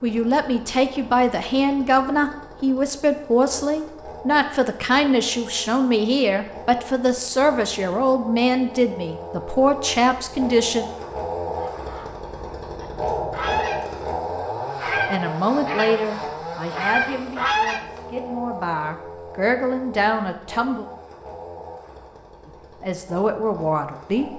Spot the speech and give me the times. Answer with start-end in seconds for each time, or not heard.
0.0-10.8, 15.1-20.9, 22.4-24.3.